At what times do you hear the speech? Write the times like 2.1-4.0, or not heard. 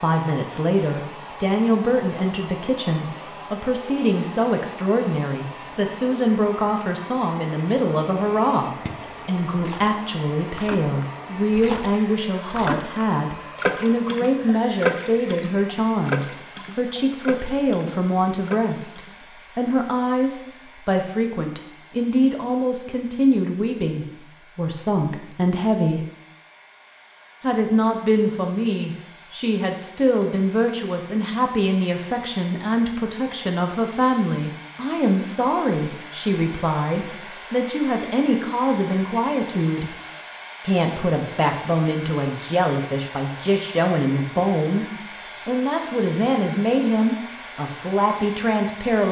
0.0-26.1, 27.4-40.0, 40.6-44.9, 45.5-49.0.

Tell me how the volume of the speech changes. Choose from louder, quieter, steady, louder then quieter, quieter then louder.
steady.